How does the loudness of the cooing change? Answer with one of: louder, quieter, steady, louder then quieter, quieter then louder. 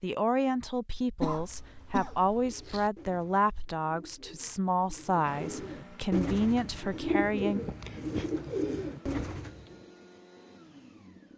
louder.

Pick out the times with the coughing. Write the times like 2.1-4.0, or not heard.
1.1-2.9, 7.7-8.3.